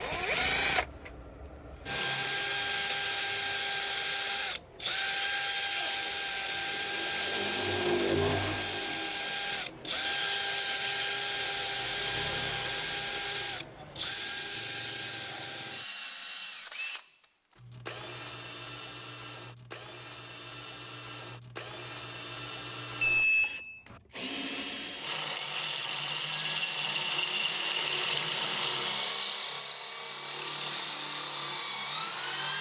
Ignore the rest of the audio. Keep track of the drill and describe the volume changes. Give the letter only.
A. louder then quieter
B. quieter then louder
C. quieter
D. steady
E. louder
B.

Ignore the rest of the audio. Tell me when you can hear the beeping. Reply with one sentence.
You can hear the beeping from 23.0 to 23.9 s.